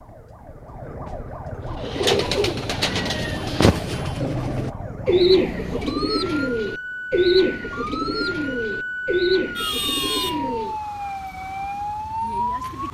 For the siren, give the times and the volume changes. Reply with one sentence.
The siren can be heard from 0.0 to 12.8 s, getting louder.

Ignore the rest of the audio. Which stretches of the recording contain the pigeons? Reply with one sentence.
You can hear the pigeons from 1.6 to 10.8 s.